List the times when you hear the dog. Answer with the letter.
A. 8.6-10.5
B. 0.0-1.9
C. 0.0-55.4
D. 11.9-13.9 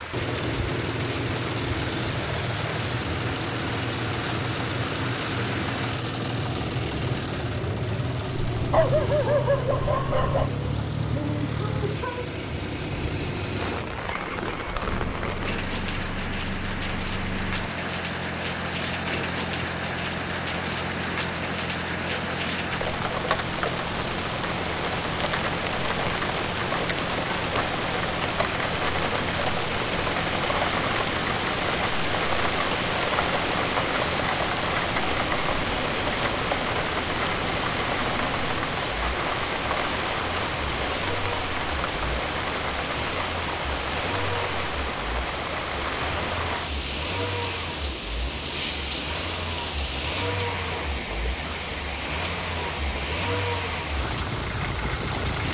A.